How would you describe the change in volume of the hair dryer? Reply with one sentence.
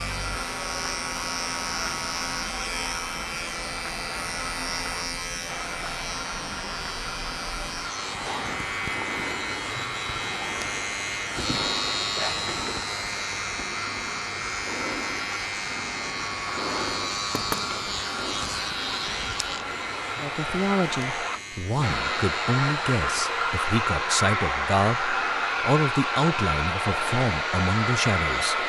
The volume of the hair dryer goes up.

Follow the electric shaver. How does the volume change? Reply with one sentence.
The loudness of the electric shaver goes down.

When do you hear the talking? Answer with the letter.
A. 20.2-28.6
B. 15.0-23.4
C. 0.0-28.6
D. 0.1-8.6
A.